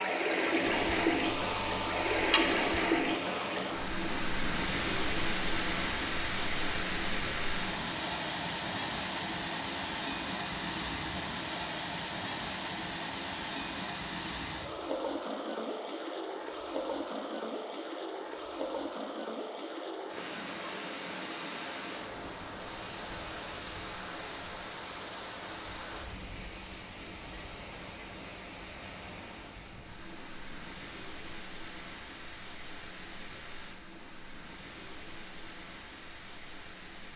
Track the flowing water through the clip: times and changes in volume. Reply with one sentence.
You can hear the flowing water from 0.0 to 37.1 s, getting quieter.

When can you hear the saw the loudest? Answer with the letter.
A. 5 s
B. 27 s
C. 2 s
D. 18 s
C.